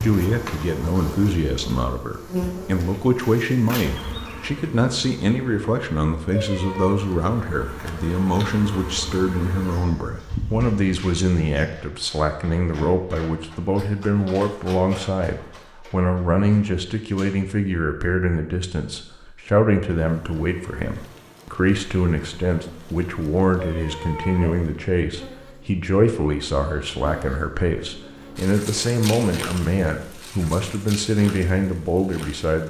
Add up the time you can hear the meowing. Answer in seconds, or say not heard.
2 s.